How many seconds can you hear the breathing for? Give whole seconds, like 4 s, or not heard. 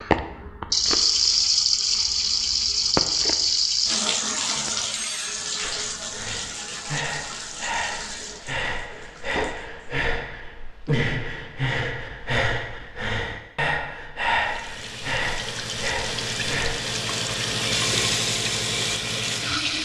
11 s.